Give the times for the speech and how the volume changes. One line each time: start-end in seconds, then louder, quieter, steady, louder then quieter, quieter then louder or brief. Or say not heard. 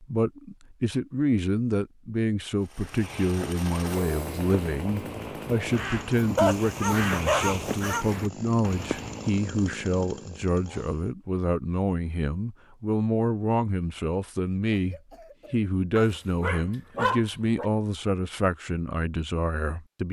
0.0-20.0 steady.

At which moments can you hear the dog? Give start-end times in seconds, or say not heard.
6.3-8.1, 15.9-17.6.